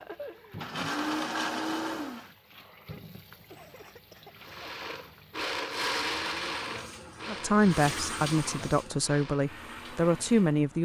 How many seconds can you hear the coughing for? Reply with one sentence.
The coughing can be heard for 2 seconds in total.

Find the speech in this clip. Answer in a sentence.
The speech can be heard from 7.2 to 10.7 s.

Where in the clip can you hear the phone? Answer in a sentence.
The phone can't be heard in this clip.